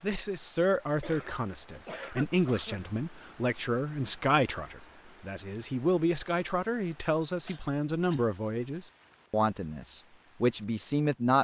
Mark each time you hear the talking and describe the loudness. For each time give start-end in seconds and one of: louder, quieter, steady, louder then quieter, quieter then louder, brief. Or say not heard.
0.0-11.3 steady.